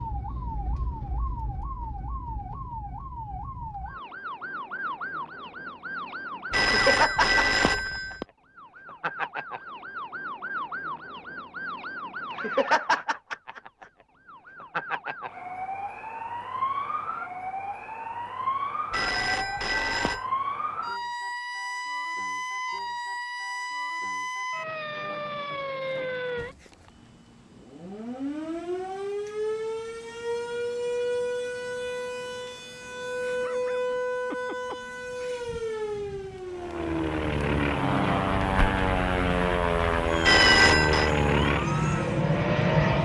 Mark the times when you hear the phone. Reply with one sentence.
You can hear the phone from 6.5 to 8.2 s, from 18.9 to 20.2 s and from 40.2 to 41.1 s.